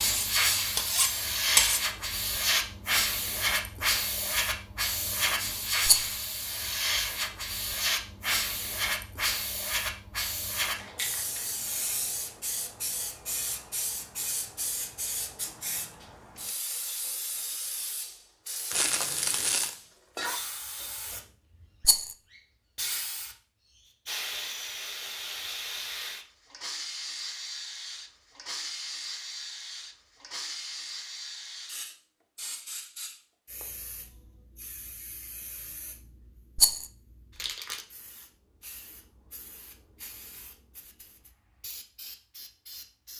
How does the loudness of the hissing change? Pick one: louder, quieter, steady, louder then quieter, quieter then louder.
quieter.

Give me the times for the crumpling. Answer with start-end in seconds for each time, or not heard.
18.7-19.8.